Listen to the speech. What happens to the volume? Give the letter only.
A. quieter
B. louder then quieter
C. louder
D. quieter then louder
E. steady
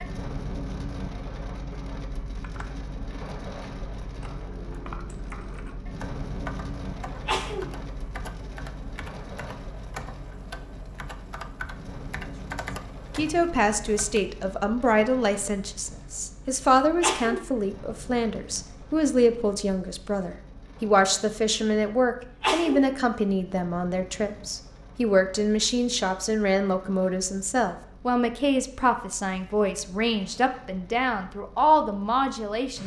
E.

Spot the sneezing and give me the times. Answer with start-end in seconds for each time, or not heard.
7.2-7.8, 17.0-17.5, 22.4-22.9.